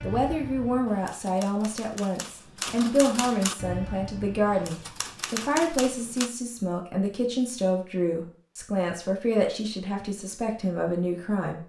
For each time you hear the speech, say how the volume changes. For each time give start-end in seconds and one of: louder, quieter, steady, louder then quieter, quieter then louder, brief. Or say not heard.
0.0-11.6 steady.